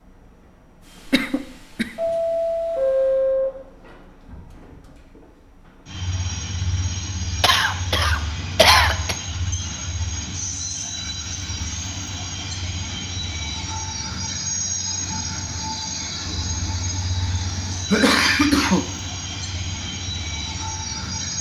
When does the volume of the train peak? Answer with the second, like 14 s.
3 s.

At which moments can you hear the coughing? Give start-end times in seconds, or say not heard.
1.1-1.9, 7.4-9.2, 17.9-18.9.